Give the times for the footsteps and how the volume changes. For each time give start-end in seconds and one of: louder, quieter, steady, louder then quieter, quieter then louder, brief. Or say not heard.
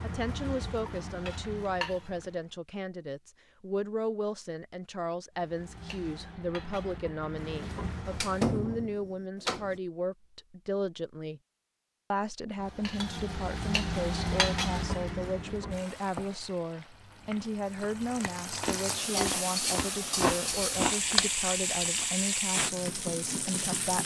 not heard.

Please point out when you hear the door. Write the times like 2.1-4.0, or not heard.
8.1-9.8.